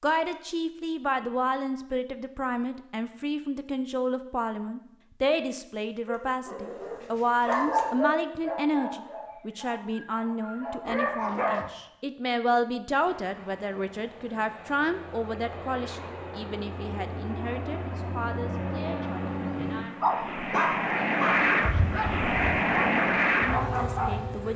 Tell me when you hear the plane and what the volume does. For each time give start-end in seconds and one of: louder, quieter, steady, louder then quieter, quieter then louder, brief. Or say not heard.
12.9-24.5 louder.